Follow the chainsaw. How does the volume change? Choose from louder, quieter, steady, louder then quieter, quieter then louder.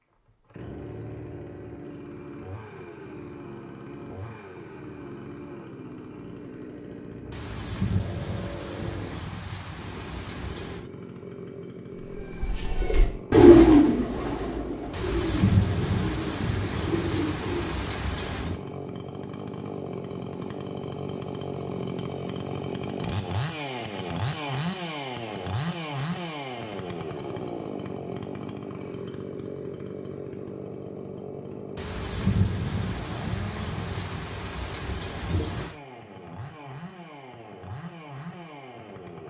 louder then quieter.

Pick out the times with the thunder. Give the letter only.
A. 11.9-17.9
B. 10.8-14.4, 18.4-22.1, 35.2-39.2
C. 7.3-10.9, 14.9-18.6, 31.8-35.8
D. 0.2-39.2
C.